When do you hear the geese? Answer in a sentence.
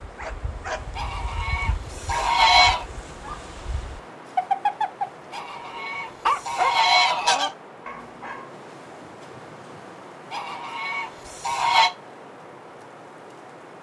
You can hear the geese from 0.9 to 2.9 s, from 5.3 to 7.5 s and from 10.3 to 11.9 s.